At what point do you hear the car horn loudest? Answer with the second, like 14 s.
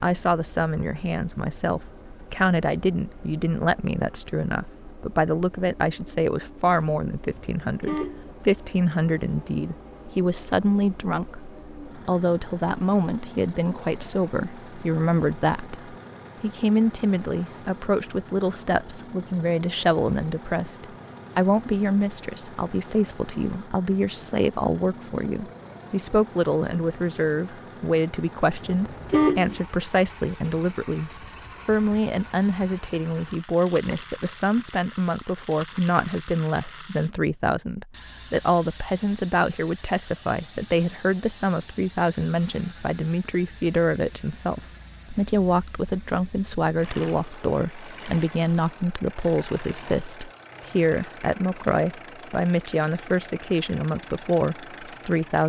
29 s.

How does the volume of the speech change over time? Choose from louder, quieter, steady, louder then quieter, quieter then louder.
steady.